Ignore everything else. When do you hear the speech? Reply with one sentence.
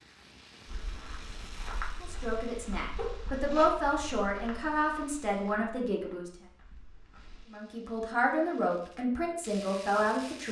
You can hear the speech from 2.0 to 6.3 s and from 7.5 to 10.4 s.